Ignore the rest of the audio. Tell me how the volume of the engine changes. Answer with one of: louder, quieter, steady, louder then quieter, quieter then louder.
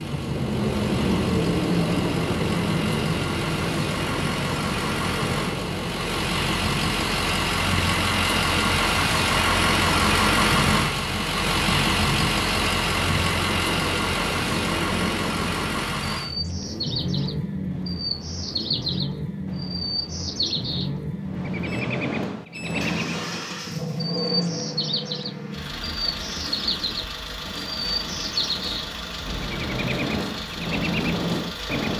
louder then quieter.